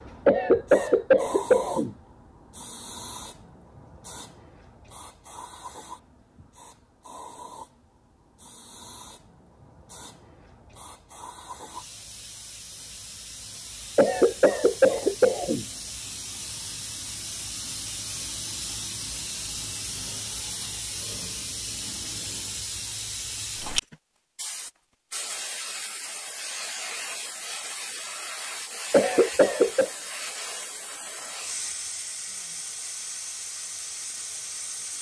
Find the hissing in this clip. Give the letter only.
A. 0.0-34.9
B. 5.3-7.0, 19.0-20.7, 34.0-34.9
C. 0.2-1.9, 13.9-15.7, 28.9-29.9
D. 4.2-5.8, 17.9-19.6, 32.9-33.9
A.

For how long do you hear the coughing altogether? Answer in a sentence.
You can hear the coughing for 4 seconds altogether.